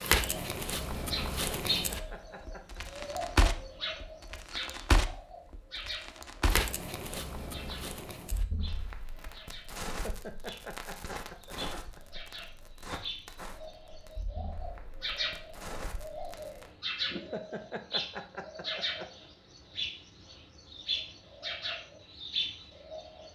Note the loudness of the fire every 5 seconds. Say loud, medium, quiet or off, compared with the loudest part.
loud, medium, quiet, quiet, off.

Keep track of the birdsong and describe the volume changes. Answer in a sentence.
The loudness of the birdsong goes down, then up.